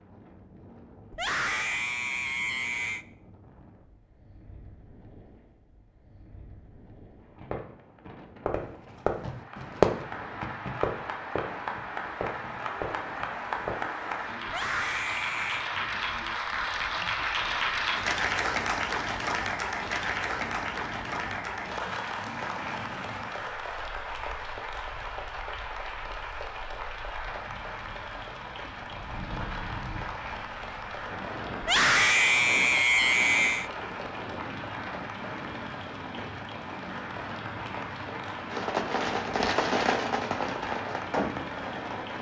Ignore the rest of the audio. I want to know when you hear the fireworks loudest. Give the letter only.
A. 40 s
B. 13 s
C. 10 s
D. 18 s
C.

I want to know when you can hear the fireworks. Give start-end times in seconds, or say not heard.
7.3-13.8, 38.5-42.1.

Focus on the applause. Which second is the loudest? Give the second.
18 s.